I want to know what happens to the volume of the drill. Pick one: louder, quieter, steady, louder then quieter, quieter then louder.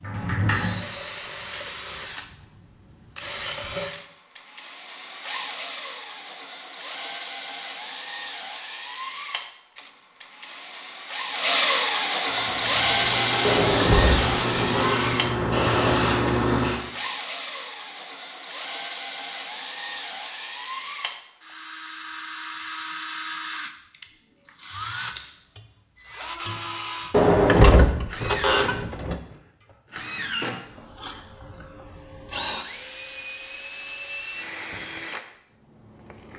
louder then quieter.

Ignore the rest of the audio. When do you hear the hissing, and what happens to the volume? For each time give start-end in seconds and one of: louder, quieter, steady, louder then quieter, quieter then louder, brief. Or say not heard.
12.2-16.8 louder.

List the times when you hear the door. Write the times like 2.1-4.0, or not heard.
0.0-0.8, 13.4-16.1, 27.1-29.1.